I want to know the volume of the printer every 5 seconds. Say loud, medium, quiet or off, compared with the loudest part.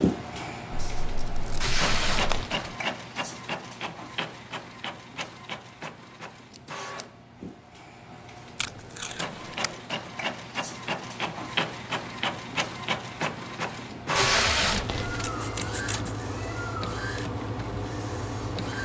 loud, medium, loud, loud.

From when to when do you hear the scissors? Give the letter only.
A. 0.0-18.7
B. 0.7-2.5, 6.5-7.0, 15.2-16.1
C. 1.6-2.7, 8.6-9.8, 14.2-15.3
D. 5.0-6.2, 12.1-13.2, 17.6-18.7
B.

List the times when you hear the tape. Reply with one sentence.
The tape can be heard from 1.6 to 2.7 s, from 8.6 to 9.8 s and from 14.2 to 15.3 s.